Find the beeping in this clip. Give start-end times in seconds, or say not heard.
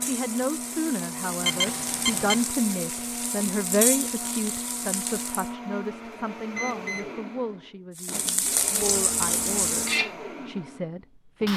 1.4-2.4, 6.5-7.1.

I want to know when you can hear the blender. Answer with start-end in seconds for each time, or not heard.
0.0-11.5.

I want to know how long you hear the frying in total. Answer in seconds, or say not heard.
8 s.